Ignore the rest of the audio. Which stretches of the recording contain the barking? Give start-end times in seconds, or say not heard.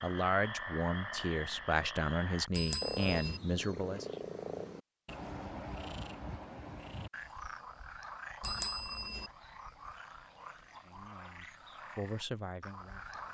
not heard.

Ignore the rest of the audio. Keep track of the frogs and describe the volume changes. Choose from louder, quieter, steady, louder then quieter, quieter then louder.
quieter.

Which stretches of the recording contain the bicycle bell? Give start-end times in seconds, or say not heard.
2.5-3.4, 8.4-9.2.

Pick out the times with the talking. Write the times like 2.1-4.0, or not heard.
0.0-4.0, 10.7-13.2.